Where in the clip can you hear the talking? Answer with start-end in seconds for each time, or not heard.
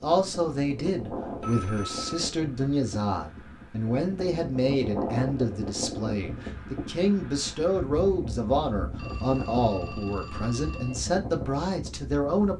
0.0-12.5.